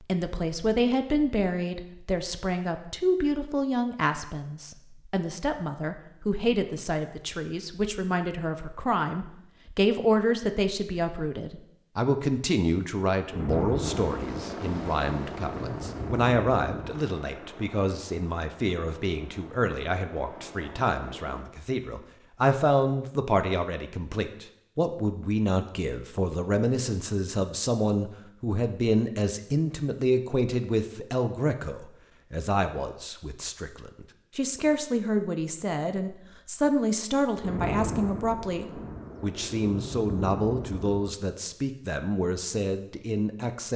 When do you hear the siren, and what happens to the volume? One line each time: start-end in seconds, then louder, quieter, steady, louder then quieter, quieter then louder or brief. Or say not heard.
not heard.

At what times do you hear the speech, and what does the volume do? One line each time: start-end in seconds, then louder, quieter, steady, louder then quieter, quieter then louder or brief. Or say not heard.
0.0-43.7 steady.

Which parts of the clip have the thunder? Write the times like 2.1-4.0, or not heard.
13.3-17.0, 37.4-41.1.